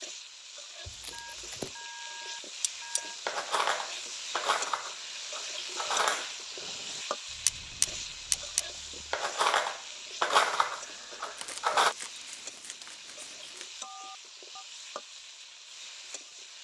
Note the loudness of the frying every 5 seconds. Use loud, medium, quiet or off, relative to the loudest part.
loud, loud, medium, medium.